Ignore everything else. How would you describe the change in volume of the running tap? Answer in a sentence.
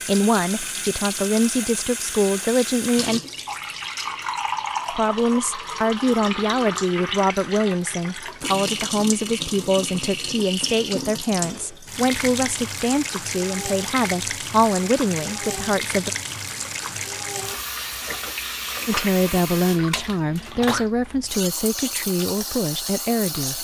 The volume of the running tap stays about the same.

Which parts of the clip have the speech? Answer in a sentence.
You can hear the speech from 0.1 to 3.2 s, from 4.9 to 16.1 s and from 18.9 to 23.5 s.